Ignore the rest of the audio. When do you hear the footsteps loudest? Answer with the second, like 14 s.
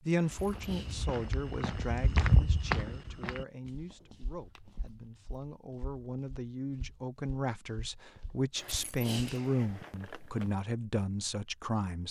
2 s.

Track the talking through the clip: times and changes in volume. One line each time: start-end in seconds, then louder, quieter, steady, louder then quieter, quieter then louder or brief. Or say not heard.
0.1-12.0 quieter then louder.